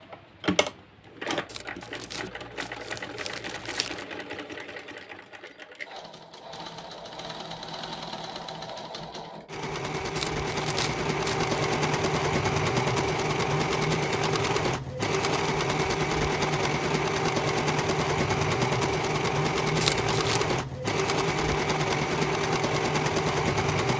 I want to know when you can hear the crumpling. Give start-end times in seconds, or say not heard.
1.4-4.0, 10.2-11.5, 19.8-20.4.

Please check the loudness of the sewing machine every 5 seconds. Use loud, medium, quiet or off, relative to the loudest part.
medium, quiet, loud, loud, loud.